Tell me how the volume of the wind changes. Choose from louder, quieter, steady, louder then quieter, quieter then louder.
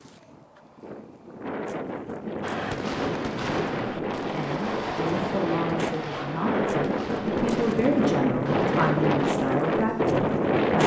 louder.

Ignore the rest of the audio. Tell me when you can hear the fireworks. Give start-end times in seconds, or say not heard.
2.4-9.2.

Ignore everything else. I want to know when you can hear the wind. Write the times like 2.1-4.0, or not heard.
0.0-10.8.